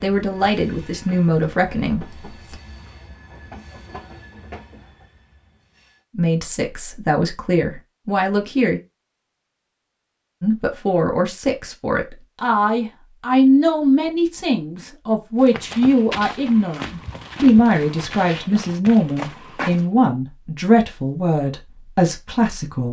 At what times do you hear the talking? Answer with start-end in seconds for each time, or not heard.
0.0-2.5, 6.2-8.8, 10.4-22.8.